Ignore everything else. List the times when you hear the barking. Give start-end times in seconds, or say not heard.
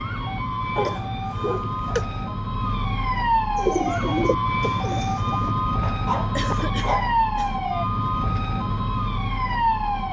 0.8-2.2, 5.8-7.2.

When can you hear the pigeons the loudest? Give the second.
4 s.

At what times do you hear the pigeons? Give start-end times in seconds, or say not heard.
3.5-5.5.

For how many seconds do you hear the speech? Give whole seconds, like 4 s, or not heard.
not heard.